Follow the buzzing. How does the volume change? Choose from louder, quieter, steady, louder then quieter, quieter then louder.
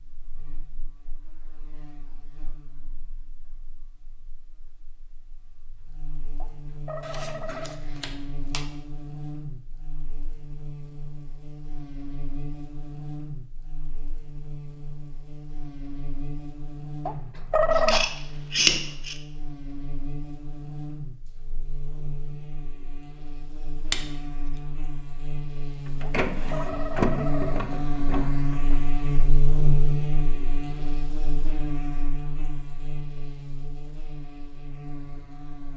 louder.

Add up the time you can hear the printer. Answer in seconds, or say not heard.
3 s.